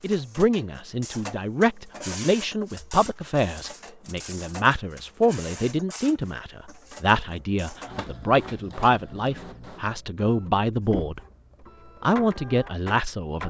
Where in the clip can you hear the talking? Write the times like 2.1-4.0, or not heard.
0.0-11.2, 12.0-13.4.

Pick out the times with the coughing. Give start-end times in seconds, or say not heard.
not heard.